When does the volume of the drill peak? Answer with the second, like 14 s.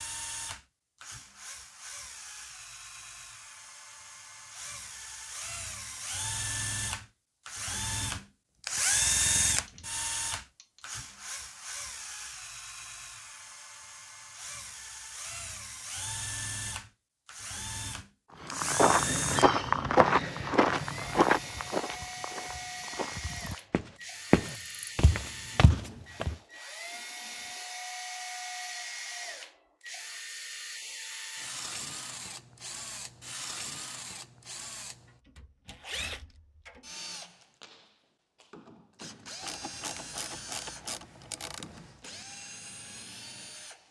9 s.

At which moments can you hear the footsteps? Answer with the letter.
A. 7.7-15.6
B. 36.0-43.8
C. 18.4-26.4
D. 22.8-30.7
C.